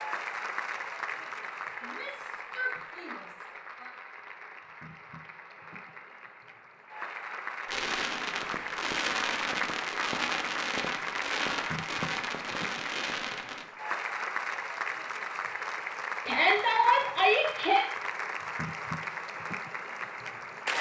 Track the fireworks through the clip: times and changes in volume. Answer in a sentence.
The fireworks can be heard from 7.7 to 13.7 s, at a steady volume.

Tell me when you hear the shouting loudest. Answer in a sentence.
The volume of the shouting peaks at 17 seconds.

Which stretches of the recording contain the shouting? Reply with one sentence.
You can hear the shouting from 1.8 to 3.9 s and from 16.2 to 17.9 s.